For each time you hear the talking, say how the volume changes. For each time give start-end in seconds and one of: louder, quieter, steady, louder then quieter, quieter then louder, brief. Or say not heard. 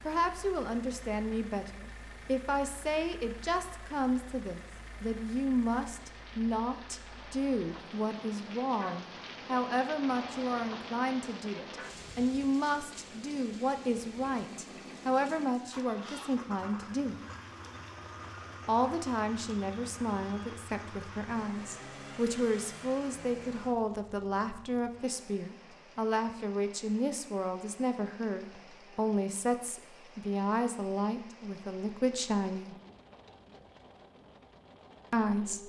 0.0-17.2 steady
18.6-32.8 steady
35.1-35.6 brief.